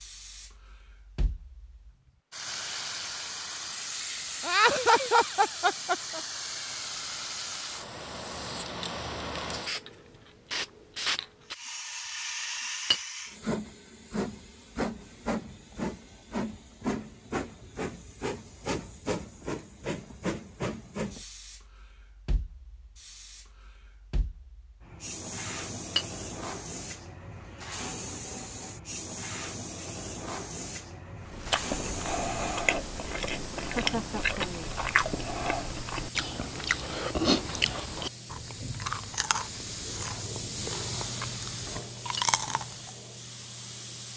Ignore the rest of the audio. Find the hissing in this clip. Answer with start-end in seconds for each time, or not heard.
0.0-44.1.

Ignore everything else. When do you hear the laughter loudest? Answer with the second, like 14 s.
5 s.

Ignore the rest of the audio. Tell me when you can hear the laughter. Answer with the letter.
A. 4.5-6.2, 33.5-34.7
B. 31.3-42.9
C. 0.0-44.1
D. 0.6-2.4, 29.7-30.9
A.